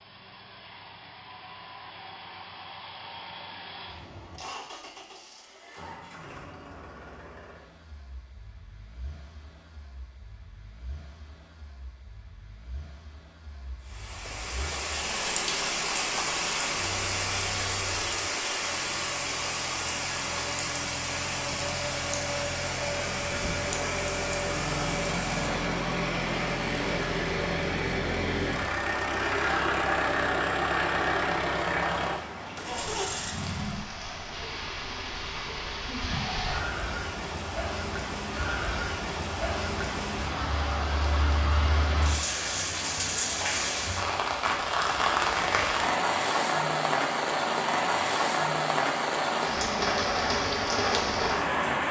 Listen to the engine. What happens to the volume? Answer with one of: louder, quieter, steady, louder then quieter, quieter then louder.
quieter then louder.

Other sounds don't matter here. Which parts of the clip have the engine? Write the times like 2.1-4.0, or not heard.
0.0-33.9.